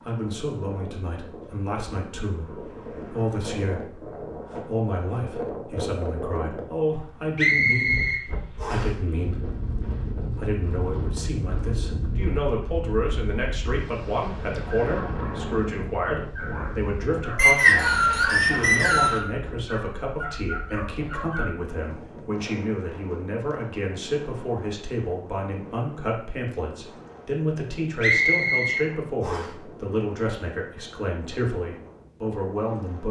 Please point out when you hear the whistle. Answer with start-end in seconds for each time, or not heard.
7.3-8.8, 17.4-19.2, 28.0-29.4.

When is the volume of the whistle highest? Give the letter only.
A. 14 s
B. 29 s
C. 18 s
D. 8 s
C.